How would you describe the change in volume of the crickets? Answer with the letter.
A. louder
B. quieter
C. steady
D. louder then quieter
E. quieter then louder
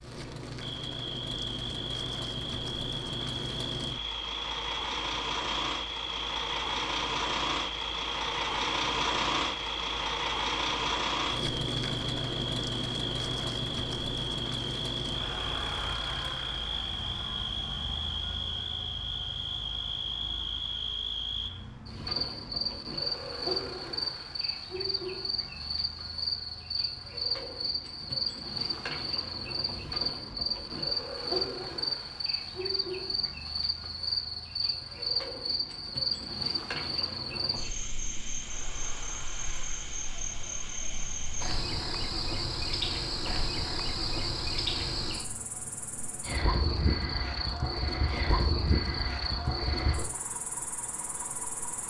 C.